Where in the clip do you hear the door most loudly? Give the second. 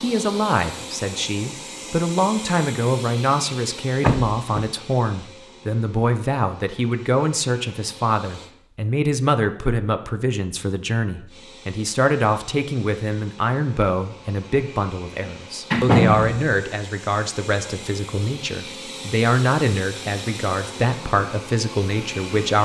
16 s.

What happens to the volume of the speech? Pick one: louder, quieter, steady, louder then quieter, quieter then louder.
steady.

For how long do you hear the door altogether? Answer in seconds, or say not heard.
2 s.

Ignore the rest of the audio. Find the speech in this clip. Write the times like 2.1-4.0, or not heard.
0.0-22.6.